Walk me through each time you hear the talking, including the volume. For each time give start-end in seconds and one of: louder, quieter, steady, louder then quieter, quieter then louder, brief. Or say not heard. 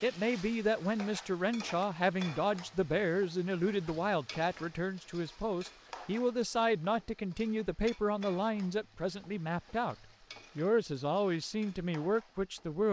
0.0-9.9 steady
10.6-12.8 brief.